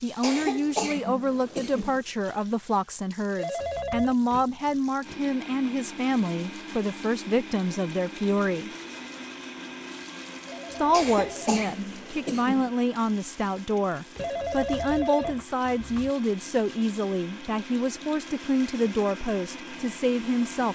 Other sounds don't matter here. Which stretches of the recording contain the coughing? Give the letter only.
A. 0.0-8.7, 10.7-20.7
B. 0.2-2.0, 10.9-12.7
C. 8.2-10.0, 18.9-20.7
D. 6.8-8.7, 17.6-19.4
B.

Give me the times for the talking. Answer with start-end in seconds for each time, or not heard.
0.0-8.7, 10.7-20.7.